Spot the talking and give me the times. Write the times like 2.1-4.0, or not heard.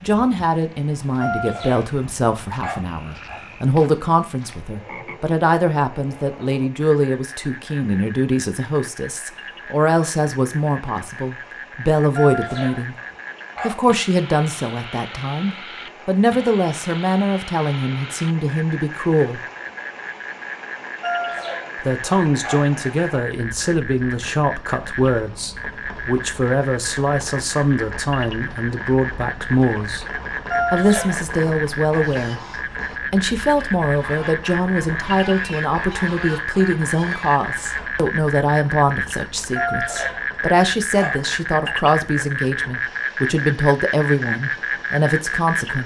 0.0-12.9, 13.6-19.4, 21.8-30.1, 30.7-45.8.